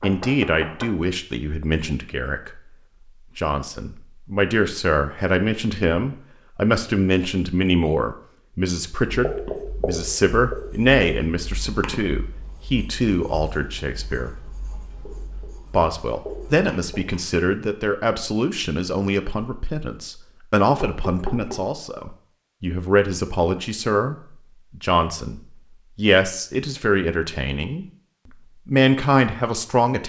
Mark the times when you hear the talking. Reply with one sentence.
You can hear the talking from 0.0 to 2.6 s, from 3.4 to 14.3 s, from 15.7 to 27.9 s and from 28.6 to 30.0 s.